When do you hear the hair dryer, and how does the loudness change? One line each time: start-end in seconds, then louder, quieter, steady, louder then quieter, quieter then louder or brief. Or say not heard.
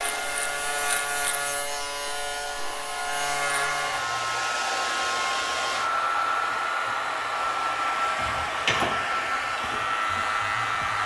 0.0-11.0 louder.